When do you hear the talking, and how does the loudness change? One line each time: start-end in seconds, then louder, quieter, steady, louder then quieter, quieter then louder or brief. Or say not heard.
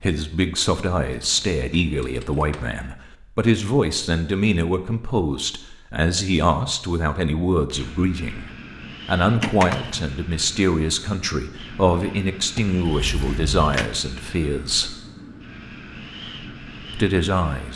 0.0-14.9 steady
16.9-17.7 brief.